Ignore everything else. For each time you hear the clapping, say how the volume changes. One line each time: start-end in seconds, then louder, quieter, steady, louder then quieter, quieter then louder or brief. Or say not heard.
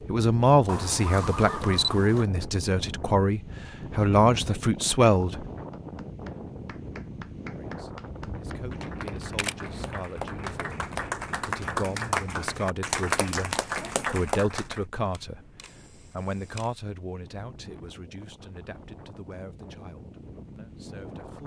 5.7-14.8 louder.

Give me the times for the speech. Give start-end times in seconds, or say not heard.
0.1-5.4, 7.5-21.4.